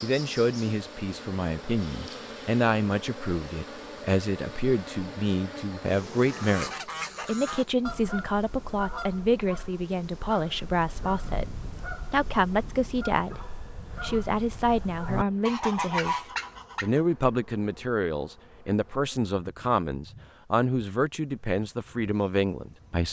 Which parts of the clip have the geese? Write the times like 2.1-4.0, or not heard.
6.2-17.0.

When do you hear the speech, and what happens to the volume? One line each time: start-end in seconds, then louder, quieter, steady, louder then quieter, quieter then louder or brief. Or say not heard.
0.0-23.0 steady.